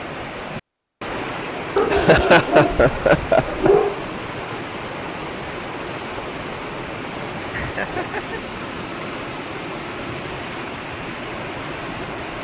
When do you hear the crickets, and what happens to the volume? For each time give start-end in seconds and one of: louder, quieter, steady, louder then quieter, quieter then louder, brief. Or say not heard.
not heard.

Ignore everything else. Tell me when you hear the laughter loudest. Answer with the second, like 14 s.
2 s.